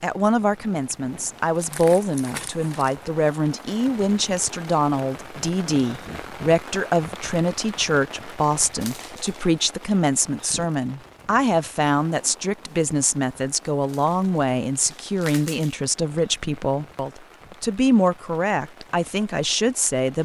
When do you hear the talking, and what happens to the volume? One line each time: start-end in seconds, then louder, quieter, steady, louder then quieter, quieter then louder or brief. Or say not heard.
0.0-20.2 steady.